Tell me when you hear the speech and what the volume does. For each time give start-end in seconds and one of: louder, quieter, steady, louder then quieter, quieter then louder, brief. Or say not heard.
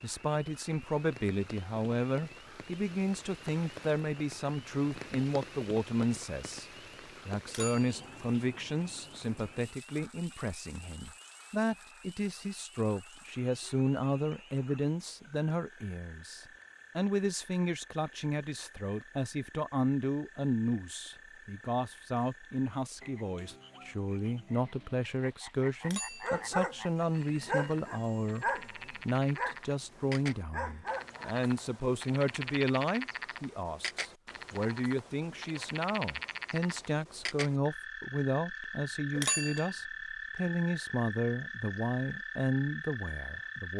0.0-43.7 steady.